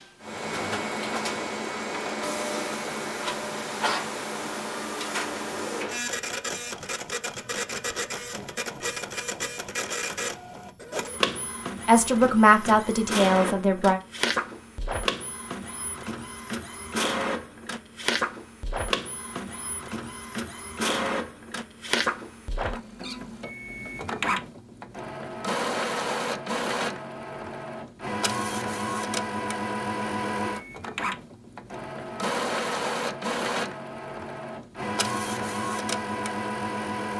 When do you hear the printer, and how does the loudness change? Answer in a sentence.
You can hear the printer from 0.0 to 37.1 s, at a steady volume.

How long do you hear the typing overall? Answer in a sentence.
You can't hear the typing here.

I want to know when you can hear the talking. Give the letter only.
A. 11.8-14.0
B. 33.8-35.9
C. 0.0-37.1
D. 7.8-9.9
A.